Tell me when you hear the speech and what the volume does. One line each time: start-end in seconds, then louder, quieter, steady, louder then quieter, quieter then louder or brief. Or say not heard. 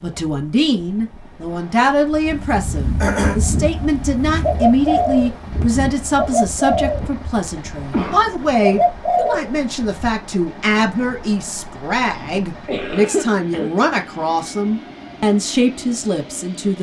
0.0-16.7 steady.